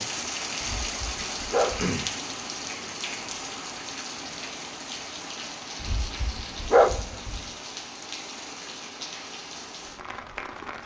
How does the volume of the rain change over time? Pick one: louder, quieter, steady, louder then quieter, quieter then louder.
quieter.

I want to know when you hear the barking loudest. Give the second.
7 s.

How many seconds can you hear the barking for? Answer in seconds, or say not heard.
3 s.